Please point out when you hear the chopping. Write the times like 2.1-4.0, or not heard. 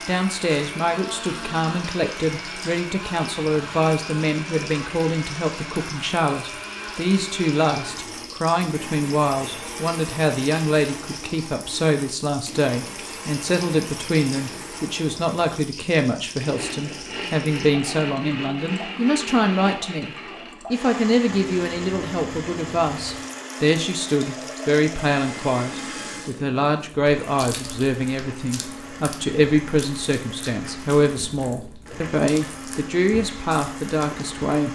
not heard.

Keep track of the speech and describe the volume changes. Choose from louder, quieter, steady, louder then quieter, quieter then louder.
steady.